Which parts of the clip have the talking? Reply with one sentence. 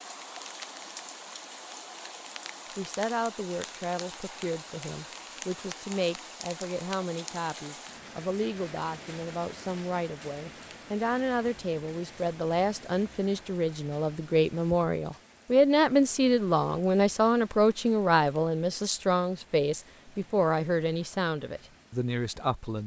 You can hear the talking from 2.8 to 22.8 s.